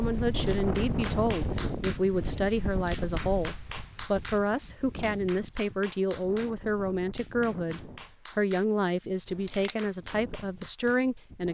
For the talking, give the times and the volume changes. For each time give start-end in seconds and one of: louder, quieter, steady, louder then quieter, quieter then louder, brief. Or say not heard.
0.0-11.4 steady.